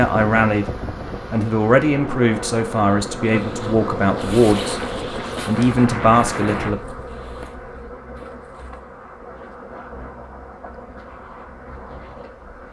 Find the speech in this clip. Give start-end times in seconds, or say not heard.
0.0-0.7, 1.3-4.8, 5.5-6.8.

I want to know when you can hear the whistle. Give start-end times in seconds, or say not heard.
not heard.